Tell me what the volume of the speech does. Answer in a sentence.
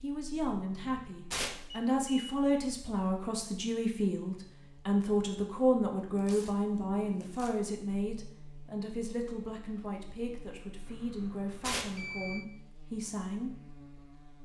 The loudness of the speech goes down.